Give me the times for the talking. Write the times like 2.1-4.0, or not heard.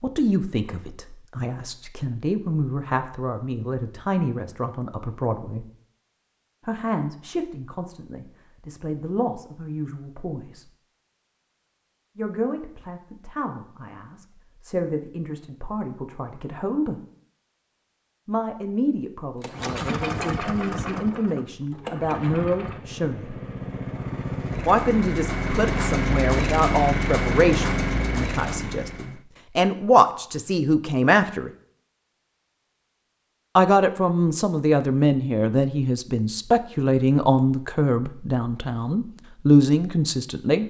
0.0-5.7, 6.7-10.7, 12.2-17.0, 18.2-23.4, 24.6-31.5, 33.5-40.6.